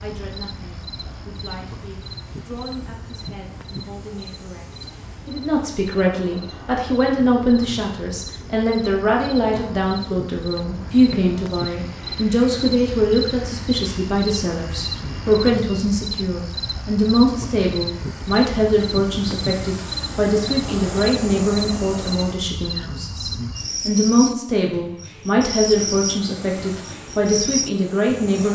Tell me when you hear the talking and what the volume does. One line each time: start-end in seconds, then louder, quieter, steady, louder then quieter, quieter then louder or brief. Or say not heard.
0.0-28.5 louder.